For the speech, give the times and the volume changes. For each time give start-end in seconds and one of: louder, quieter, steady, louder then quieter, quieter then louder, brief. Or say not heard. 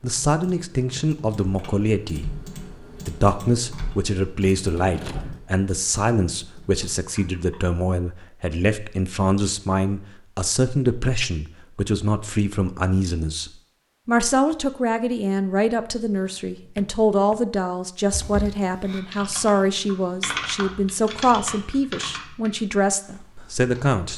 0.0-2.3 brief
3.0-24.1 steady.